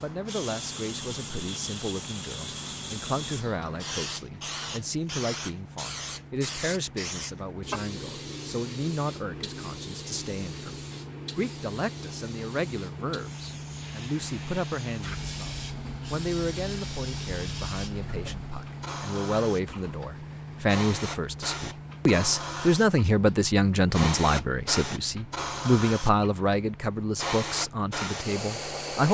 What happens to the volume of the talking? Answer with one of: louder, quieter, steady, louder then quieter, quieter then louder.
louder.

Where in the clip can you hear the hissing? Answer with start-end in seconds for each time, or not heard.
0.0-29.0.